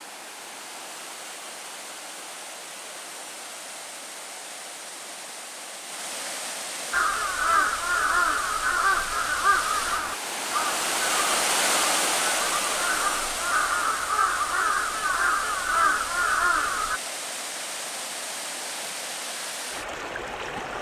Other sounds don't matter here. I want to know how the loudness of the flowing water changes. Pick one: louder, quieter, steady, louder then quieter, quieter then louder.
louder then quieter.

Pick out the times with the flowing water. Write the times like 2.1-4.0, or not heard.
0.0-20.7.